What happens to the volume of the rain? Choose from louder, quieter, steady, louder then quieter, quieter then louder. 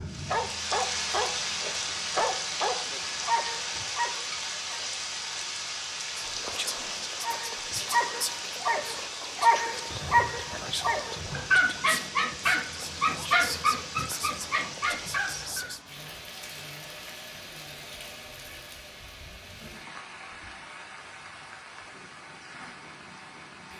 quieter.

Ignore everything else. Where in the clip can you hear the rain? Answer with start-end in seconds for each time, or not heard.
0.0-23.7.